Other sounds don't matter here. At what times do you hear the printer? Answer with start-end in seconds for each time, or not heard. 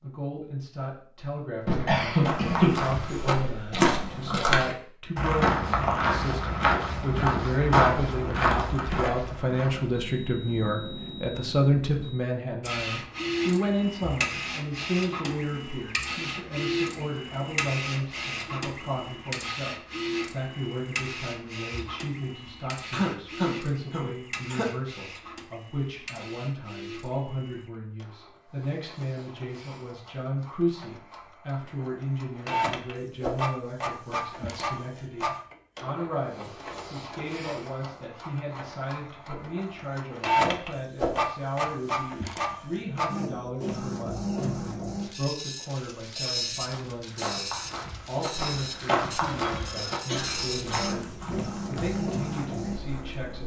12.6-53.4.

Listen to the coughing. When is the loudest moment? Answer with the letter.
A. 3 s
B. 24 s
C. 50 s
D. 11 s
A.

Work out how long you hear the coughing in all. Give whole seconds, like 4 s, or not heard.
6 s.